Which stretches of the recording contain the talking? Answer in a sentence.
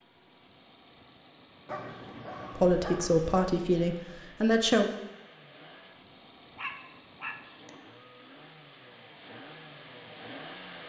The talking can be heard from 2.5 to 4.9 s.